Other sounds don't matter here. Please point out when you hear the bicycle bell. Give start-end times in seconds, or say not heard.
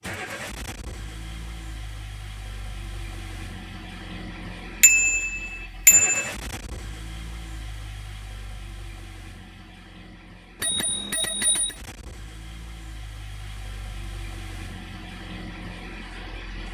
4.8-6.3, 10.6-11.8.